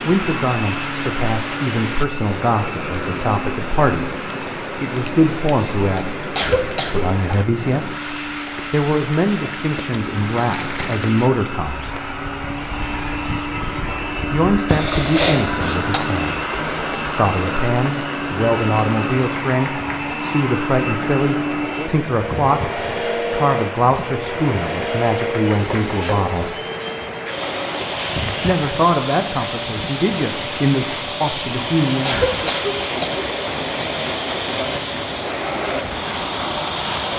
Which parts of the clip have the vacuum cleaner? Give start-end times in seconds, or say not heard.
0.0-37.1.